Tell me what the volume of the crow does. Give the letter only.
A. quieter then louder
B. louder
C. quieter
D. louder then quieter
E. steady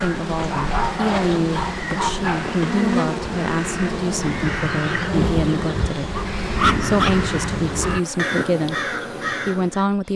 B.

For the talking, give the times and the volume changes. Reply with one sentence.
You can hear the talking from 0.0 to 10.1 s, at a steady volume.